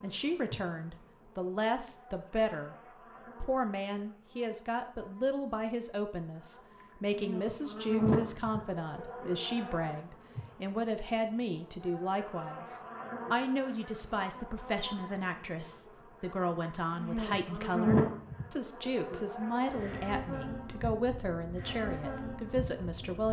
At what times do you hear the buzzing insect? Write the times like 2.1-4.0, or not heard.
0.0-23.2.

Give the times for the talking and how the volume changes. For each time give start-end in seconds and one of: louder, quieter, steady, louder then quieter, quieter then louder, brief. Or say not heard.
0.0-2.8 brief
3.4-23.2 steady.